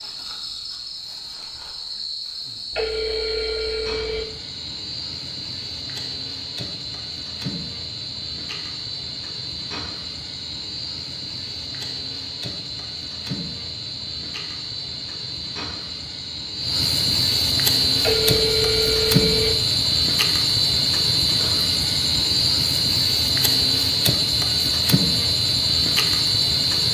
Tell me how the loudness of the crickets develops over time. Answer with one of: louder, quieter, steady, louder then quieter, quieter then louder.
louder.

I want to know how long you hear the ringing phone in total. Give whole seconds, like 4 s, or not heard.
3 s.